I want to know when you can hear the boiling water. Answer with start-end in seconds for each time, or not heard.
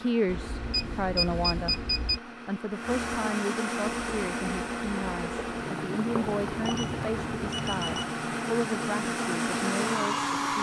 3.9-10.5.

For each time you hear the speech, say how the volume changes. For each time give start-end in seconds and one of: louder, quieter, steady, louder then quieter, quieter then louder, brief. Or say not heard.
0.0-10.5 steady.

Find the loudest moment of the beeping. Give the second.
1 s.